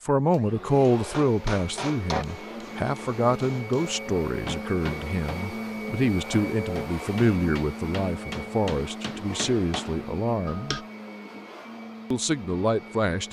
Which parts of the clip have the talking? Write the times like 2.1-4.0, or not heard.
0.0-10.8, 12.1-13.2.